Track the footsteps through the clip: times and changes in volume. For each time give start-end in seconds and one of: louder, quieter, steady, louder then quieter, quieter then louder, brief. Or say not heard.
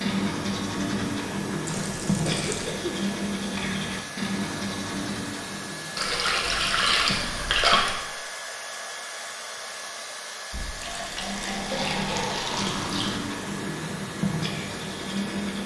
not heard.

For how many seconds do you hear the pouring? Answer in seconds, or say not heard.
6 s.